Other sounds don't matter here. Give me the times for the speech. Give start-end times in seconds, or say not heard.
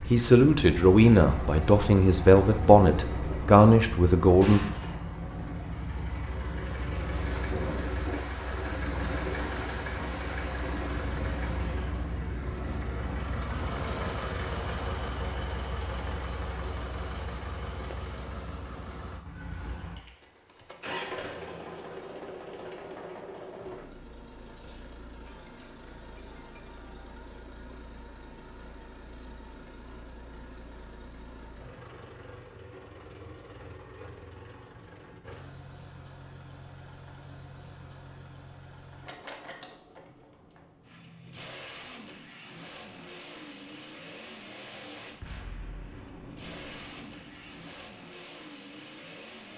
0.0-4.6.